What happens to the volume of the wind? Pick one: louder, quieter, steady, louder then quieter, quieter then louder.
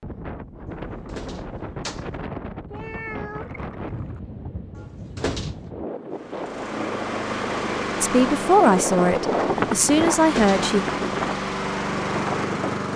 louder.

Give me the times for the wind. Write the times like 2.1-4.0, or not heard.
0.0-12.8.